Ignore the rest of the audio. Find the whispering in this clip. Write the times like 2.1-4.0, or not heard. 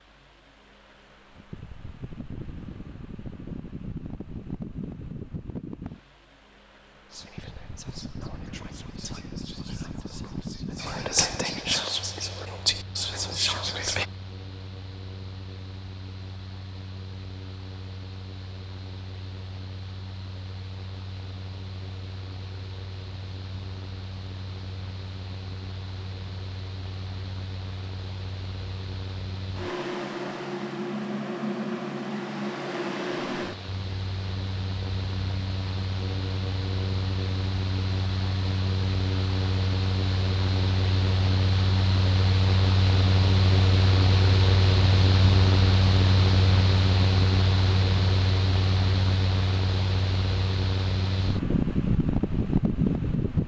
7.1-14.1.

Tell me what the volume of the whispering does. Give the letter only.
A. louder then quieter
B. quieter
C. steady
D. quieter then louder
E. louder
E.